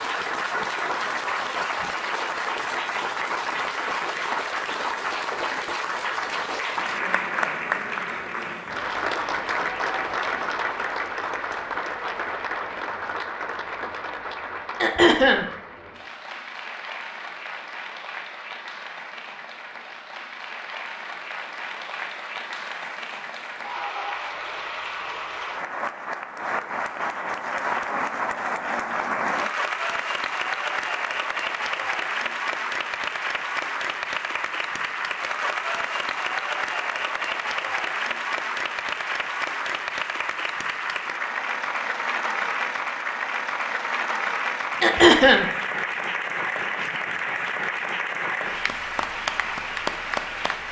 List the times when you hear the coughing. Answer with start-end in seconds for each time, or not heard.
14.8-15.4, 44.8-45.5.